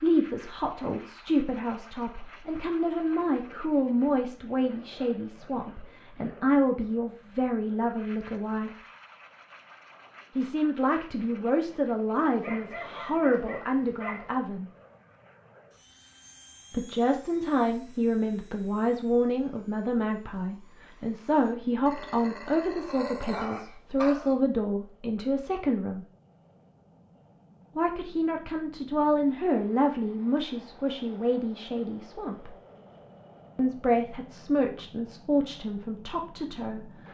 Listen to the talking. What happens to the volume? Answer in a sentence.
The loudness of the talking stays about the same.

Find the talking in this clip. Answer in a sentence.
You can hear the talking from 0.0 to 8.8 s, from 10.3 to 14.7 s, from 16.7 to 26.1 s, from 27.8 to 32.5 s and from 33.5 to 36.9 s.